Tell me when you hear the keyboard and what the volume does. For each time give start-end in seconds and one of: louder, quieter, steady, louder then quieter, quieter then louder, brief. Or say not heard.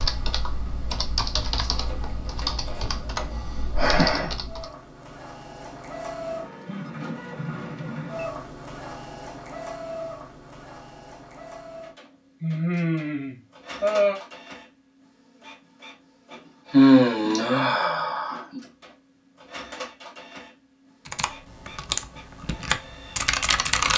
0.0-4.7 steady
21.1-23.9 brief.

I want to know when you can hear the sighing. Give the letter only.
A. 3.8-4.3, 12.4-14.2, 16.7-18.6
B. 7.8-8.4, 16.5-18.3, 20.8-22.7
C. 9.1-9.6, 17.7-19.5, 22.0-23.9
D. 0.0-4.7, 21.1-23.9
A.